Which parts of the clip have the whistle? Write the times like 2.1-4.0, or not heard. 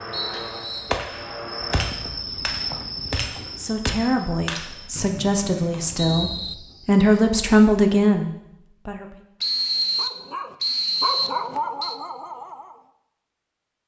0.1-0.9, 5.0-6.5, 9.4-12.0.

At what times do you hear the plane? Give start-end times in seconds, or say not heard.
0.0-1.9.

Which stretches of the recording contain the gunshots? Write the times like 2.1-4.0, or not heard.
0.8-5.1.